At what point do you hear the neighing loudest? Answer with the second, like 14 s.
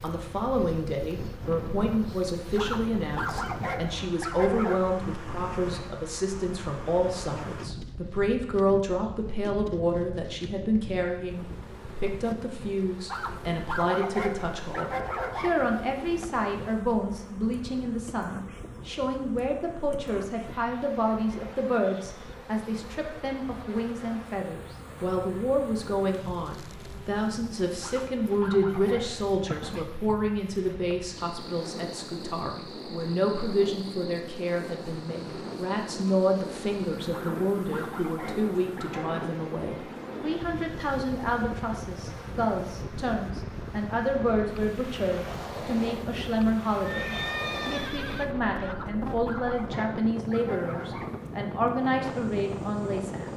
47 s.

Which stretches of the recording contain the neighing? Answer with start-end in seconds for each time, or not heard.
46.9-48.8.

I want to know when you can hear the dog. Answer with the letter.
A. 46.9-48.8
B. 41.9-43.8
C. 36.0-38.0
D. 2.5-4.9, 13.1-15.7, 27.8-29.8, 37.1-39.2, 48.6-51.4
D.